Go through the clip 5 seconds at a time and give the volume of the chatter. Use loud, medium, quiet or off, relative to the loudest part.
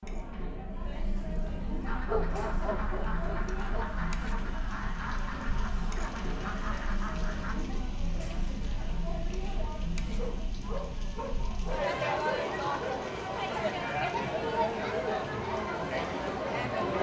medium, medium, loud, loud.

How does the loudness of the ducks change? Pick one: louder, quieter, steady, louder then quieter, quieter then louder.
steady.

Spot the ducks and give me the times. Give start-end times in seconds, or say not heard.
1.9-7.5.